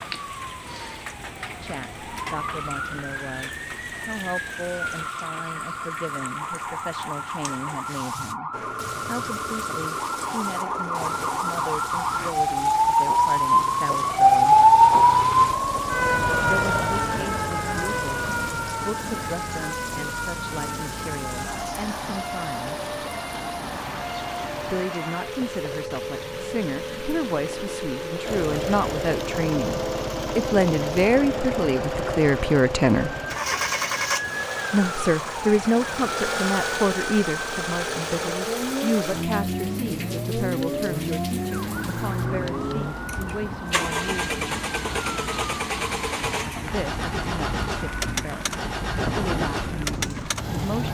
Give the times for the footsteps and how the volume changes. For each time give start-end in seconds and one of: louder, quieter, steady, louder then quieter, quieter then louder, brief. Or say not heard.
not heard.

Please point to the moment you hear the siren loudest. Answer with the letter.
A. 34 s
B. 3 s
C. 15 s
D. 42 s
C.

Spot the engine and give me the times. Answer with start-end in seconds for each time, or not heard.
8.5-24.9, 28.2-50.8.